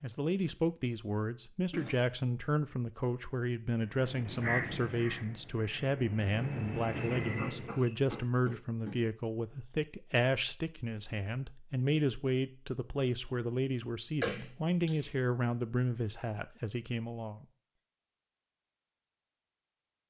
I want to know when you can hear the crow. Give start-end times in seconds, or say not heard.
3.9-7.8.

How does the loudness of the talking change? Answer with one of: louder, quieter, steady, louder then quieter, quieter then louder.
steady.